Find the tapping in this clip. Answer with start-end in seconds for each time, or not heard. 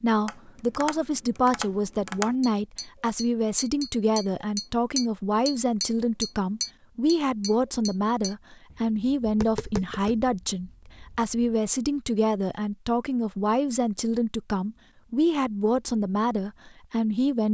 0.2-11.3.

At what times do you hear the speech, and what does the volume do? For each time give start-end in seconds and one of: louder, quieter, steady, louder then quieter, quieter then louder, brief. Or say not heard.
0.0-17.4 steady.